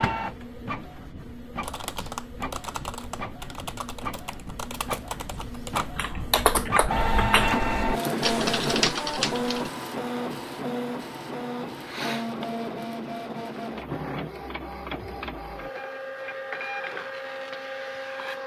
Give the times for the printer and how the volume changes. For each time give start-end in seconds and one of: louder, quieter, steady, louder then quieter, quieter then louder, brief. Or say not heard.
0.0-18.4 louder then quieter.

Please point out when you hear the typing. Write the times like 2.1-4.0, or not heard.
1.6-9.7.